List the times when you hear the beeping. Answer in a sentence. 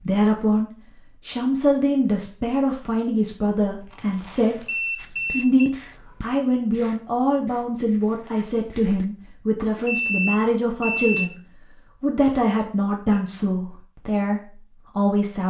You can hear the beeping from 4.7 to 5.7 s and from 9.8 to 11.3 s.